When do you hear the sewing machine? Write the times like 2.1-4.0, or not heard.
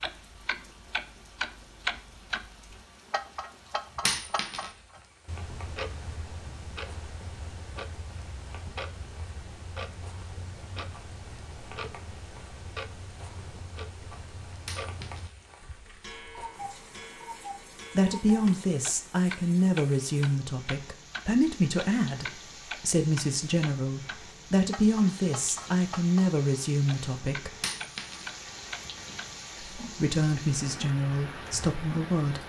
not heard.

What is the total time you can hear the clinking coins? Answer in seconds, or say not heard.
2 s.